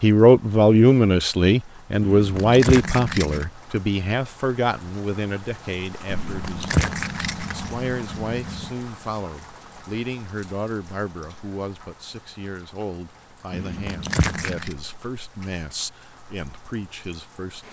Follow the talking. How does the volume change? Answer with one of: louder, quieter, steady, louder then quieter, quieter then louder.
quieter.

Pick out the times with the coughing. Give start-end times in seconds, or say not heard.
not heard.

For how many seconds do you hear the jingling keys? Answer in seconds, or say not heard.
5 s.